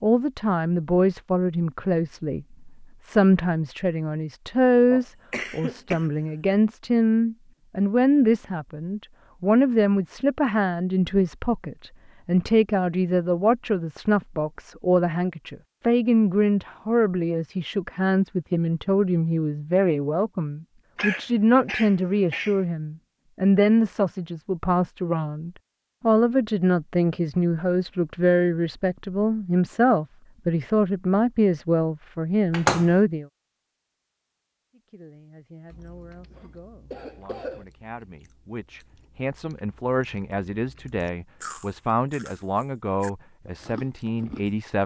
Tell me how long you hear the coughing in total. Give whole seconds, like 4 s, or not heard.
5 s.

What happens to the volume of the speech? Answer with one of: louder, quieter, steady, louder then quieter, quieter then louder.
quieter.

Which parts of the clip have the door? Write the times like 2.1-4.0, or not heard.
32.5-33.0.